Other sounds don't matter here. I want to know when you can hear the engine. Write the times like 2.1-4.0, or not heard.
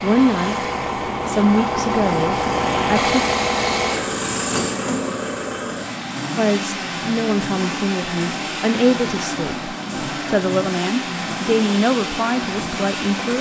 0.0-13.3.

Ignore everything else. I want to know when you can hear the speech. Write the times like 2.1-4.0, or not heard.
0.0-0.7, 1.2-3.2, 6.3-13.3.